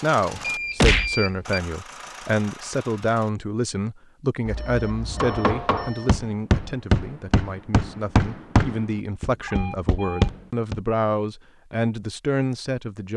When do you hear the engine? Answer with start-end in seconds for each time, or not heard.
0.0-3.3.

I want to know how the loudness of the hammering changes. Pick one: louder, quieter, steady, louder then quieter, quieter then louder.
steady.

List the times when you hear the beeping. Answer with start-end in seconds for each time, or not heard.
0.3-1.6, 4.5-6.2, 9.4-10.3.